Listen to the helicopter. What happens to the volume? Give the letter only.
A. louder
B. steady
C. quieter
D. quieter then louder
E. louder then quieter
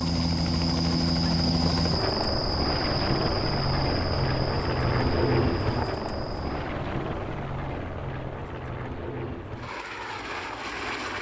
C.